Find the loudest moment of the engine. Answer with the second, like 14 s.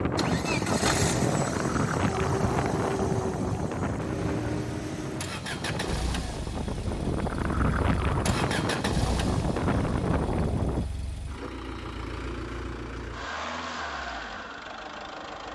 1 s.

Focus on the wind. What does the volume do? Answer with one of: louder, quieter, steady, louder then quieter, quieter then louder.
quieter then louder.